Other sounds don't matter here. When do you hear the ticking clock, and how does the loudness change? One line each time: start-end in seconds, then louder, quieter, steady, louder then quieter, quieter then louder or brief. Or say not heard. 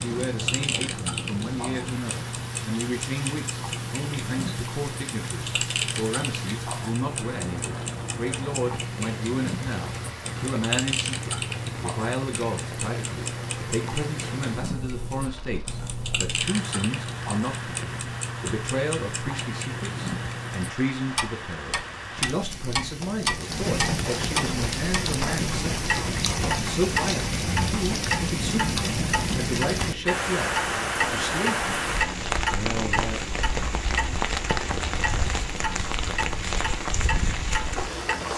0.0-38.3 steady.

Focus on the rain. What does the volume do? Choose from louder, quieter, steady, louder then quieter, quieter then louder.
louder.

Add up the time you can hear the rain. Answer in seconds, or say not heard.
38 s.